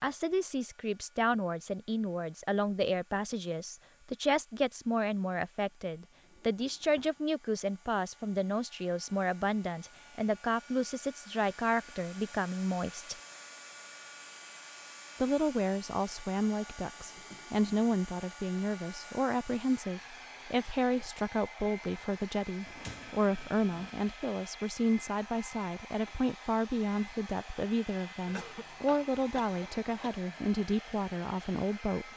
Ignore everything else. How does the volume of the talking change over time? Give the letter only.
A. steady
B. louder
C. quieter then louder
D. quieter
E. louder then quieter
A.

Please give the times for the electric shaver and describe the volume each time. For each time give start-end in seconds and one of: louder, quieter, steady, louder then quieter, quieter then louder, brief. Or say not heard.
not heard.